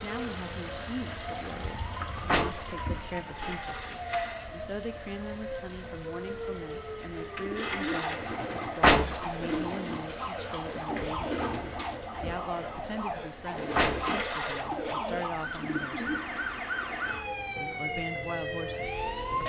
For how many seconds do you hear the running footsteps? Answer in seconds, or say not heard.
not heard.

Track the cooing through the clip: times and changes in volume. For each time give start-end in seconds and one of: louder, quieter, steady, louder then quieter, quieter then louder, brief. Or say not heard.
7.0-16.9 steady.